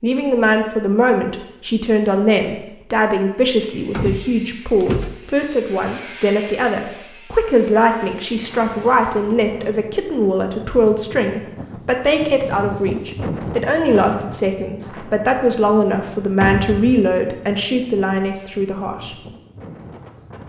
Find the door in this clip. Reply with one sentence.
You can hear the door from 3.9 to 5.3 s and from 16.4 to 17.1 s.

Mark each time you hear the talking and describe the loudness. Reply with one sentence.
You can hear the talking from 0.0 to 19.1 s, at a steady volume.